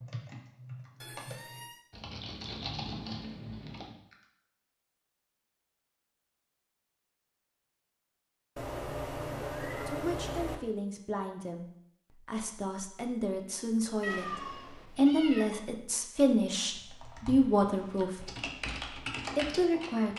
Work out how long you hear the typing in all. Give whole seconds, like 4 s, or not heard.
8 s.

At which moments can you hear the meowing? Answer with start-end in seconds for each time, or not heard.
1.0-1.8, 8.6-10.6, 14.0-15.4.